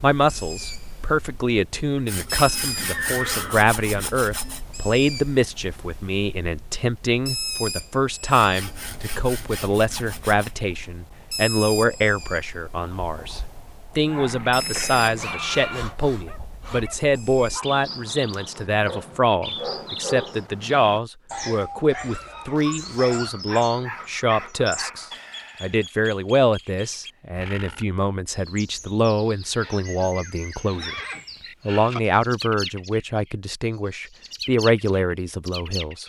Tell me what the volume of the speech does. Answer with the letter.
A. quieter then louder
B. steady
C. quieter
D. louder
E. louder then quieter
B.